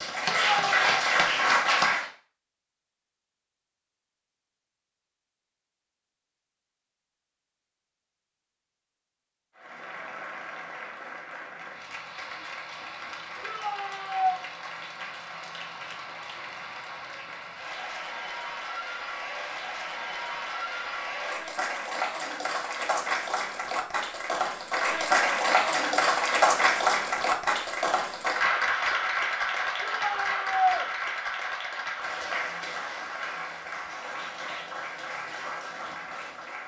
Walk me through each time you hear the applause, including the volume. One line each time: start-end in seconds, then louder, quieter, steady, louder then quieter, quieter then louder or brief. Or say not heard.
0.0-2.1 brief
9.6-36.6 louder then quieter.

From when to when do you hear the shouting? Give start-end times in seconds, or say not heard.
0.2-0.9, 13.4-14.4, 29.8-30.9.